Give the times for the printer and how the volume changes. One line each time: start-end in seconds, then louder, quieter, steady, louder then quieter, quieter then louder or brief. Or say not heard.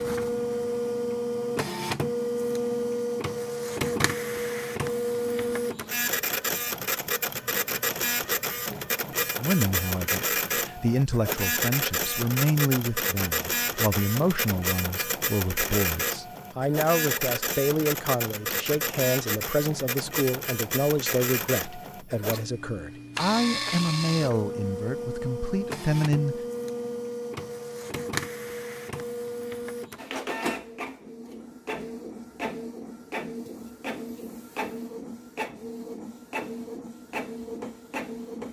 0.0-38.4 quieter.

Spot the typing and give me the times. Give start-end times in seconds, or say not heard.
not heard.